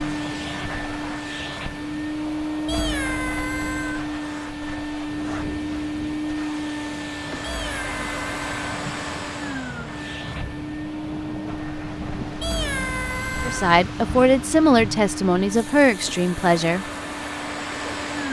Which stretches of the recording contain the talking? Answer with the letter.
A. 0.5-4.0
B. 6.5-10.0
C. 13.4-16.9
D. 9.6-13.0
C.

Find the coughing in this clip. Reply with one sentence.
The coughing can't be heard in this clip.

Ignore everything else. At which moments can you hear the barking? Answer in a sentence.
The barking can't be heard in this clip.